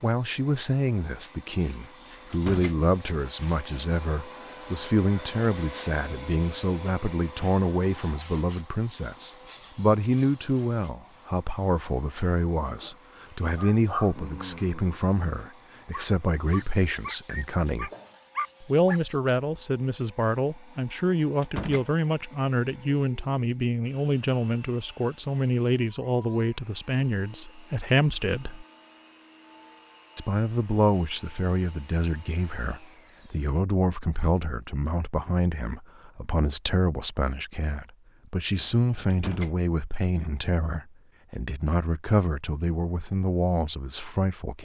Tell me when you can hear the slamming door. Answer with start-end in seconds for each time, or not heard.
2.3-2.8, 21.4-21.9, 39.1-39.5.